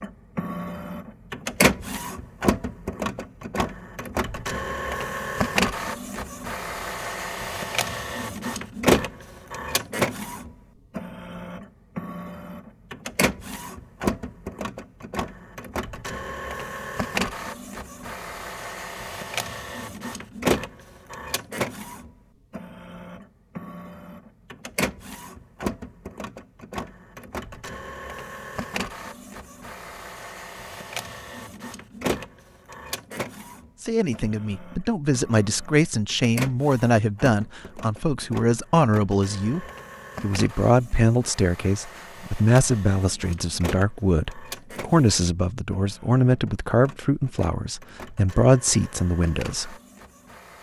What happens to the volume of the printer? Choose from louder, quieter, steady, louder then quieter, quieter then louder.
quieter.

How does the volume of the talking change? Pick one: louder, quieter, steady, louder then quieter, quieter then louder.
steady.